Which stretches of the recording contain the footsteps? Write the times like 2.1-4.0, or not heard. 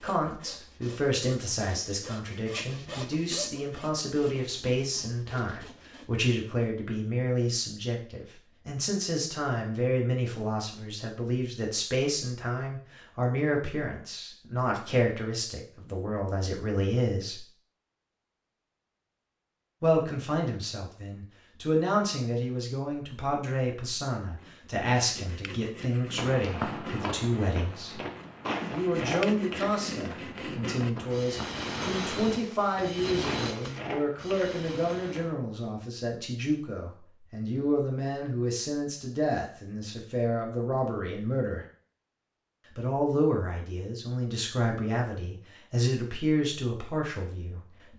26.1-35.4.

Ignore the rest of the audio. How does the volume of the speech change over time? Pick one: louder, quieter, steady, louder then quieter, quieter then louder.
steady.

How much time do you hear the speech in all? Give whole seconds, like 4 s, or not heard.
44 s.